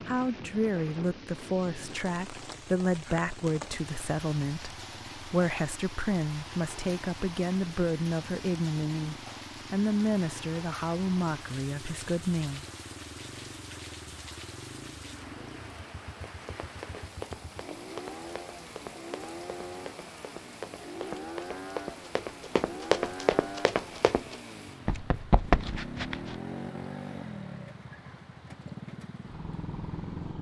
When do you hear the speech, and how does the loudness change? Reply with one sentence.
You can hear the speech from 0.1 to 12.7 s, at a steady volume.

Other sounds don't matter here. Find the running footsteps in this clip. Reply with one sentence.
You can hear the running footsteps from 16.3 to 26.4 s.